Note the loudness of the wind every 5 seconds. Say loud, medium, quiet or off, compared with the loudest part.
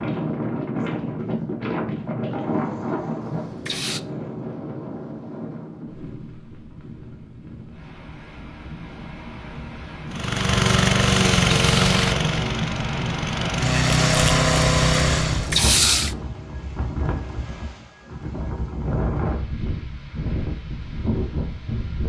loud, medium, loud, loud, loud.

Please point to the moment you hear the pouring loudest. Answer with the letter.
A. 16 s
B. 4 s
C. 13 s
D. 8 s
A.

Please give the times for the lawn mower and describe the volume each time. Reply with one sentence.
You can hear the lawn mower from 10.1 to 15.6 s, getting quieter then louder.